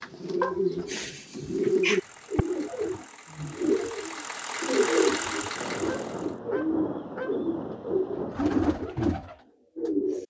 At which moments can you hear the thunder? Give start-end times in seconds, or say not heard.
5.5-8.5.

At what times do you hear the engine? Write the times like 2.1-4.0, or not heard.
1.4-6.4.